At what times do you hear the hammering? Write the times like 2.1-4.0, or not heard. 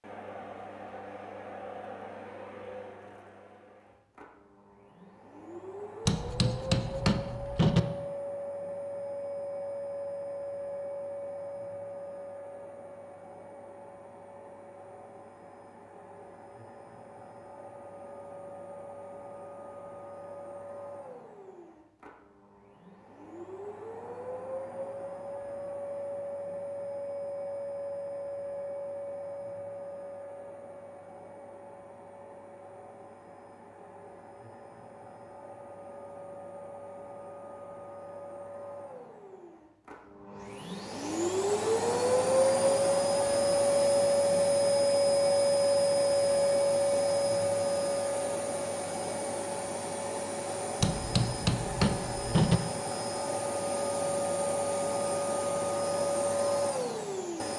6.0-7.8, 50.8-52.6.